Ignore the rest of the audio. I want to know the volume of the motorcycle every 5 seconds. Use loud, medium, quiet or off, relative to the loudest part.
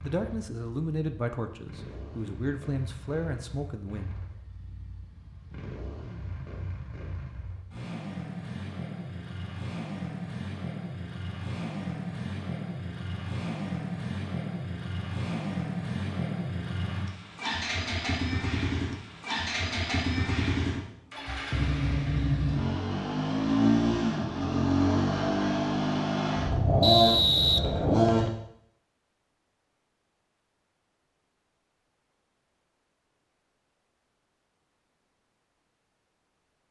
quiet, quiet, medium, medium, loud, loud, off, off.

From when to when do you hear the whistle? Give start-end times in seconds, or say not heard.
26.8-28.3.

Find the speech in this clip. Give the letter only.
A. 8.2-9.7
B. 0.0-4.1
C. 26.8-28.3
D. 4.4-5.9
B.